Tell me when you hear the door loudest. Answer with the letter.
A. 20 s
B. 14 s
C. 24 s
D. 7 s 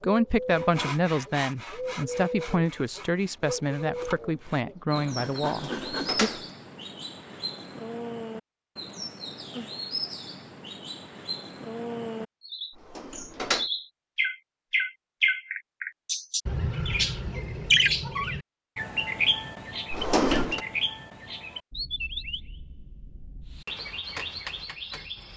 A.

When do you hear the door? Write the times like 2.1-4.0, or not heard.
5.5-6.5, 12.8-13.7, 19.9-20.6.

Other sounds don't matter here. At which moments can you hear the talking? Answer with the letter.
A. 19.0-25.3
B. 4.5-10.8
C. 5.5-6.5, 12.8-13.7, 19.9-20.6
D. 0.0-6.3
D.